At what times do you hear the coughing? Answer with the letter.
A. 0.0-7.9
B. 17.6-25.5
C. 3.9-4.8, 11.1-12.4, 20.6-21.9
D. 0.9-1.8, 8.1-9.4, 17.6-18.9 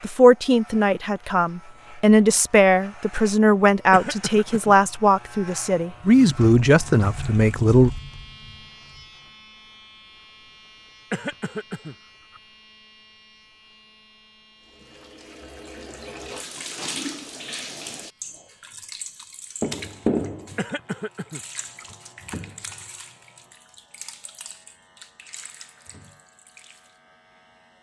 C.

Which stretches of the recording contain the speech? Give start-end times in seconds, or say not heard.
0.0-7.9.